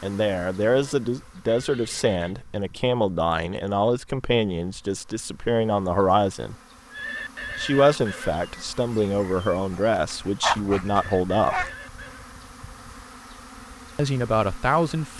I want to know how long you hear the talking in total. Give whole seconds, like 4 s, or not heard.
12 s.